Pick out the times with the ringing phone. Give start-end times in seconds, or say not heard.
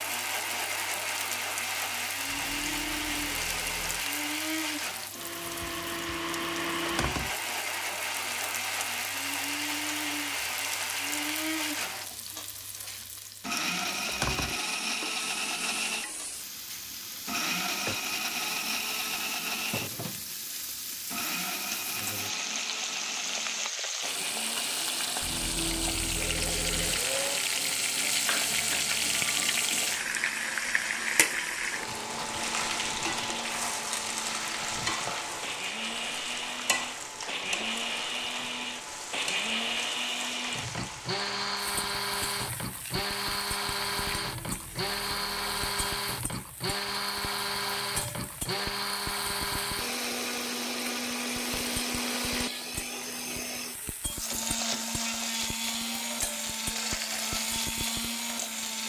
2.2-4.0, 25.2-27.1, 44.0-45.8.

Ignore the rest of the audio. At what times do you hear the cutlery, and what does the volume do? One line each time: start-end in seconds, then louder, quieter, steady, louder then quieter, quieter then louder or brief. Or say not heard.
not heard.